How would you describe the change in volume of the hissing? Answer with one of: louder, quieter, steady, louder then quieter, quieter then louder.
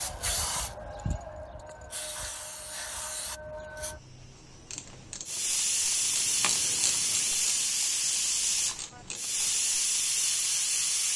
louder.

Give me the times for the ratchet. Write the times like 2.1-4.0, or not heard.
4.5-9.9.